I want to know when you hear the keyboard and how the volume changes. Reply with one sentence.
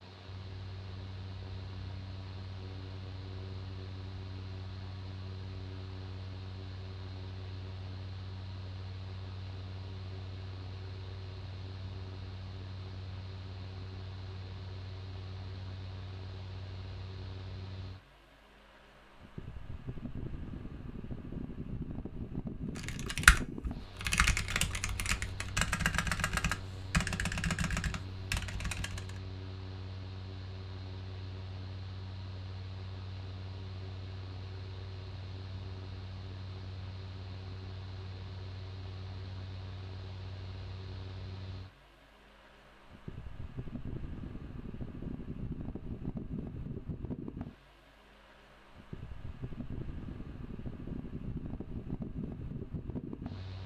You can hear the keyboard from 22.8 to 29.1 s, getting quieter.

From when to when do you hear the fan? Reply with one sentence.
You can hear the fan from 0.0 to 53.6 s.